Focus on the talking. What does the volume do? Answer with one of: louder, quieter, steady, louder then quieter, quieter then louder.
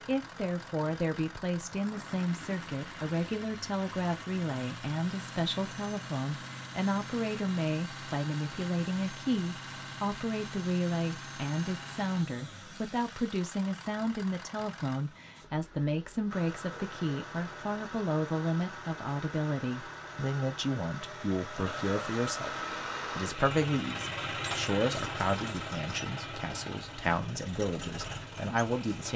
steady.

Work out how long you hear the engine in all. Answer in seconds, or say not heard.
29 s.